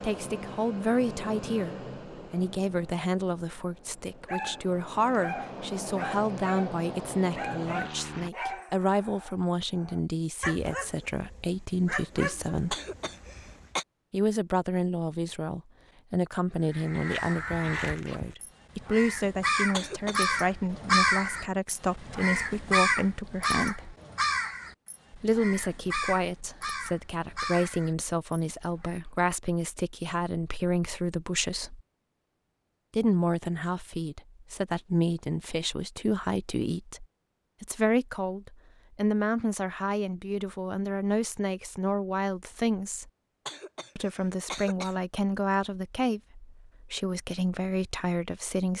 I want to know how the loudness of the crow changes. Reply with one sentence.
The loudness of the crow goes up, then down.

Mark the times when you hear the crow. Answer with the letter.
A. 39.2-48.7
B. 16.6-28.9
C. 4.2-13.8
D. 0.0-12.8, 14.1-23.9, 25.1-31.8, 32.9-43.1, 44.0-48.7
B.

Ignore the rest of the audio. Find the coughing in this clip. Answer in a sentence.
The coughing can be heard from 12.7 to 13.8 s, from 19.7 to 20.4 s and from 43.5 to 45.0 s.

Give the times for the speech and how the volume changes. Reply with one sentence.
You can hear the speech from 0.0 to 12.8 s, at a steady volume; from 14.1 to 23.9 s, at a steady volume; from 25.1 to 31.8 s, at a steady volume; from 32.9 to 43.1 s, at a steady volume; and from 44.0 to 48.7 s, at a steady volume.